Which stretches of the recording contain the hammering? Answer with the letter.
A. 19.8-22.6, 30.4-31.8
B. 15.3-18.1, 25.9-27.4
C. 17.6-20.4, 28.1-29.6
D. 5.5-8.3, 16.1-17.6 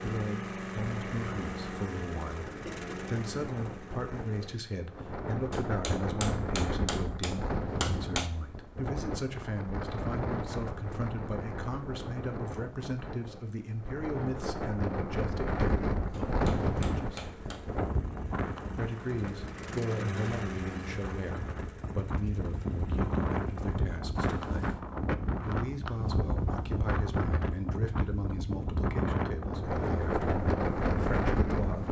D.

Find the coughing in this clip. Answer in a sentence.
You can't hear the coughing here.